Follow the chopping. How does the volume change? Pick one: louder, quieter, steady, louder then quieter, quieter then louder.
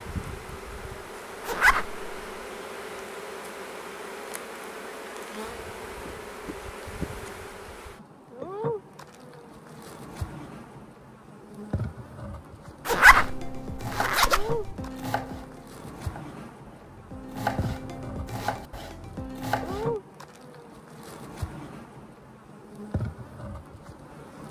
quieter then louder.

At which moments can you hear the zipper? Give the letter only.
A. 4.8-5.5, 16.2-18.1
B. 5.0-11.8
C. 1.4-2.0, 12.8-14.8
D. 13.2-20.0
C.